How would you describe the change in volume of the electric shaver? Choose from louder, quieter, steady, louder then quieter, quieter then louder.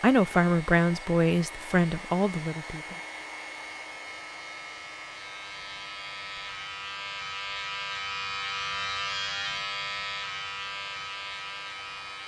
louder.